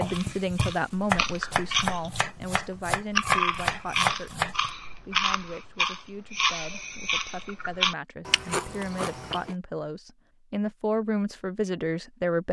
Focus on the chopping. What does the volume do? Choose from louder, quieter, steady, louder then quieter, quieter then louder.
quieter then louder.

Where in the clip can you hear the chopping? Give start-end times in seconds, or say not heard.
0.0-4.7.